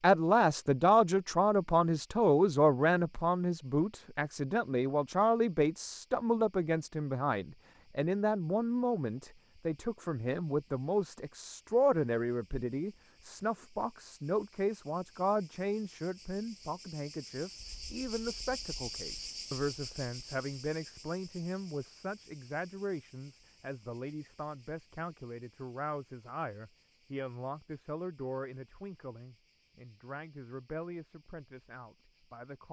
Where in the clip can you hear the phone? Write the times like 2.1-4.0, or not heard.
not heard.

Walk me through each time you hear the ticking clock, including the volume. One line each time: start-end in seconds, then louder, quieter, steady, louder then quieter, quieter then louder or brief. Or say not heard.
not heard.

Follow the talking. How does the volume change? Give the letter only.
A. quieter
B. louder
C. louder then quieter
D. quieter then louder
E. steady
A.